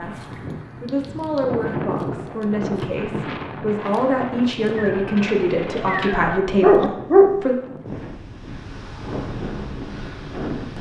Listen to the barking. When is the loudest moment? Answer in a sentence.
The loudest moment of the barking is at 7 seconds.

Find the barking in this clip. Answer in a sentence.
You can hear the barking from 5.8 to 7.4 s.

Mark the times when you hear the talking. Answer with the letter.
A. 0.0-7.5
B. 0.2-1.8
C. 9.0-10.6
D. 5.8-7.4
A.